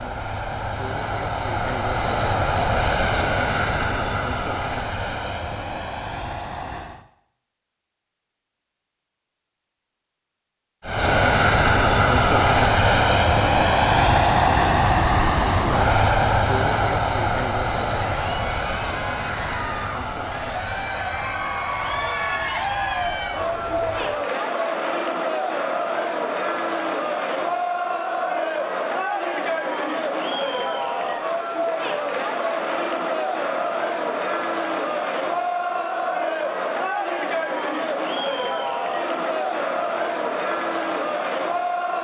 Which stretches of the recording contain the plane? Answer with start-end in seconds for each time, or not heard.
0.0-7.0, 10.8-24.2.